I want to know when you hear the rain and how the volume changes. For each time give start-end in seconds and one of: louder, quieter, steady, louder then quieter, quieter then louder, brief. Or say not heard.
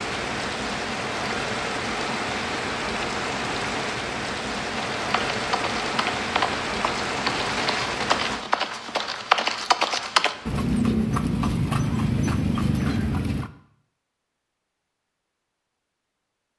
0.0-10.8 quieter.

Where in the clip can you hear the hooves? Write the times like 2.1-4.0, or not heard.
5.0-13.5.